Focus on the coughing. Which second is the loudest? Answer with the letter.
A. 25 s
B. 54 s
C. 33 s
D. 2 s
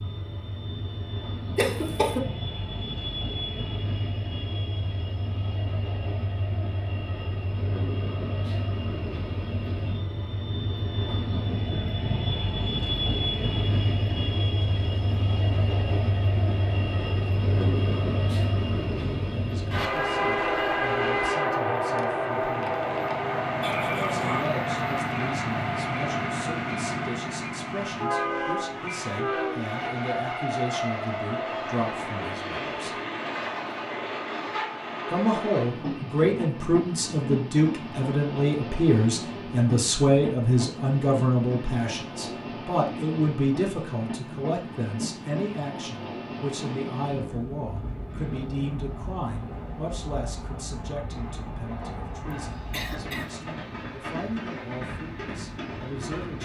D.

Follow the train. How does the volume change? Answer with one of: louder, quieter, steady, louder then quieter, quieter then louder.
louder then quieter.